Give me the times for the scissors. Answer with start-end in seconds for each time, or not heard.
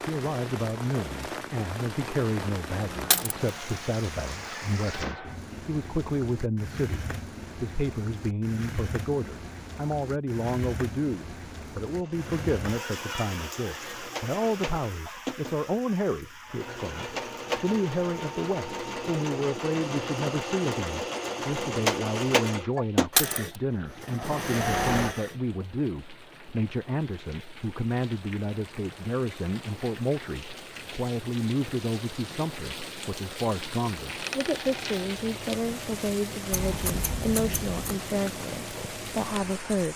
36.5-38.0.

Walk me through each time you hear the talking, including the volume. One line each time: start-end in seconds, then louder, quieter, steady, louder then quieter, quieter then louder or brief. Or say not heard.
0.1-39.9 steady.